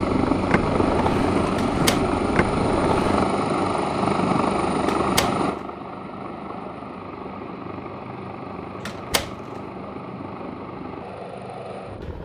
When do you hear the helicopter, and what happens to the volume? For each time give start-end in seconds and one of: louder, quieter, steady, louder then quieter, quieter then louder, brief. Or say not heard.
0.0-12.2 quieter.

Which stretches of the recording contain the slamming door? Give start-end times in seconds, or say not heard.
1.6-2.0, 5.0-5.7, 8.8-9.6.